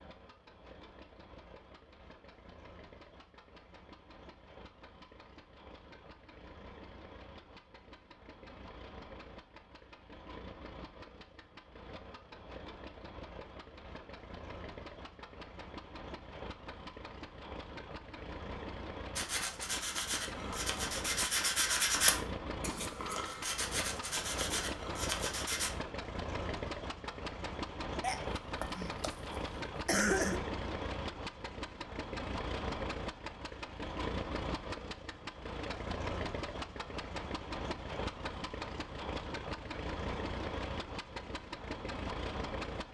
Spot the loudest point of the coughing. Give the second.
30 s.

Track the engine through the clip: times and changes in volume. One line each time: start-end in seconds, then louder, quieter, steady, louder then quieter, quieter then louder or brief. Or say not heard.
0.0-42.8 louder.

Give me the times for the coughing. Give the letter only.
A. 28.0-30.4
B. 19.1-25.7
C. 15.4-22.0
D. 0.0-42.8
A.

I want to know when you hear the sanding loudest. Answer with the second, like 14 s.
22 s.